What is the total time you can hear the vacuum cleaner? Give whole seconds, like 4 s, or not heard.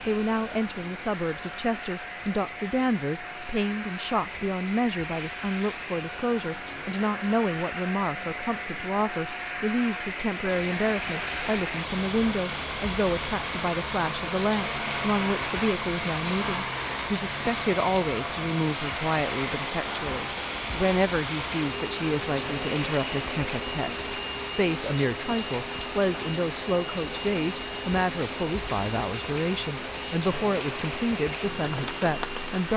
33 s.